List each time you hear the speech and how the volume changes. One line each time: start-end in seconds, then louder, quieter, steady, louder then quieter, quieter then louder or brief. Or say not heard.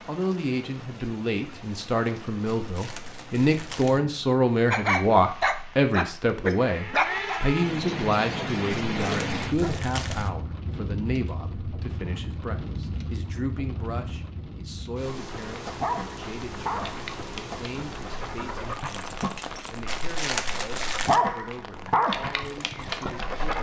0.1-23.5 quieter.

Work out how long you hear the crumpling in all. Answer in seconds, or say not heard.
4 s.